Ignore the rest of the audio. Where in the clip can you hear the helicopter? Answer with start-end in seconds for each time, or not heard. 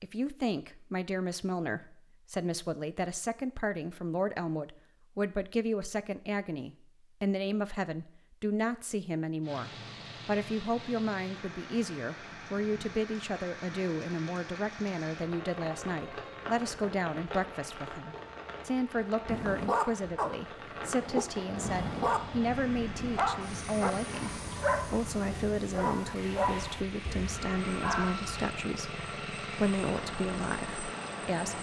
21.4-31.5.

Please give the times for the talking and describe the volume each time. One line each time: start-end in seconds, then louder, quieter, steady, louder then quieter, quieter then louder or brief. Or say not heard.
0.0-31.5 steady.